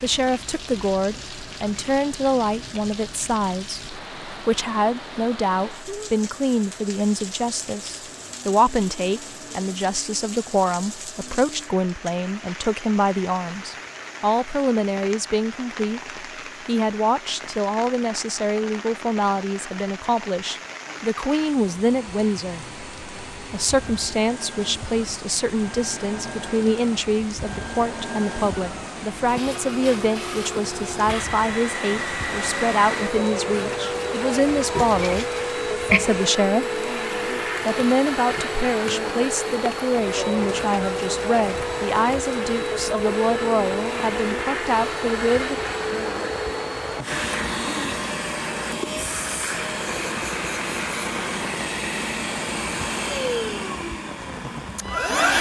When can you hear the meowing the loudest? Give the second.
36 s.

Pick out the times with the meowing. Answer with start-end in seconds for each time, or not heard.
34.8-36.2.